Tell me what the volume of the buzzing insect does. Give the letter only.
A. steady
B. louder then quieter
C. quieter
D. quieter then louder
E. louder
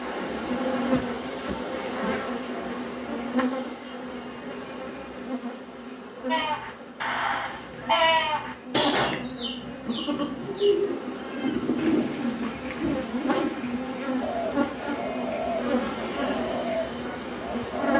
D.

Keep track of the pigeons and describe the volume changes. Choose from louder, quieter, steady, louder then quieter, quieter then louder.
quieter.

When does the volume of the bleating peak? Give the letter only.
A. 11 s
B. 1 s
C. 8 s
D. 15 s
C.